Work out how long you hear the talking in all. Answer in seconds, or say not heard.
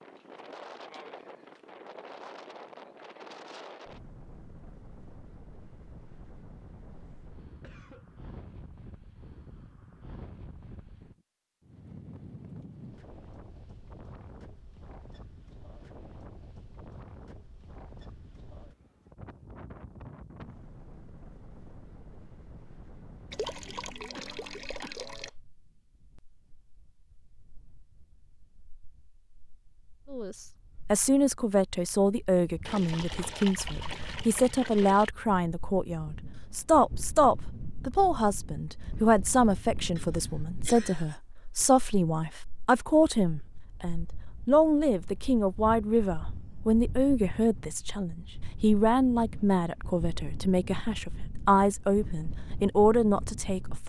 24 s.